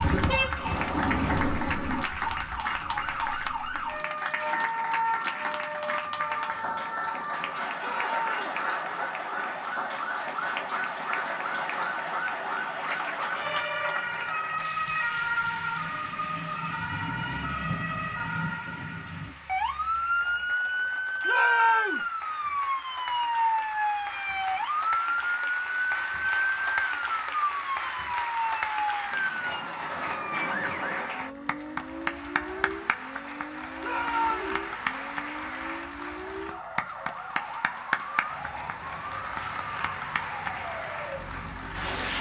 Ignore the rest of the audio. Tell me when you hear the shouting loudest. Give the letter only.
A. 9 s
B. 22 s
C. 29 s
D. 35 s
B.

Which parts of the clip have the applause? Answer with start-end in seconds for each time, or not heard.
0.0-42.1.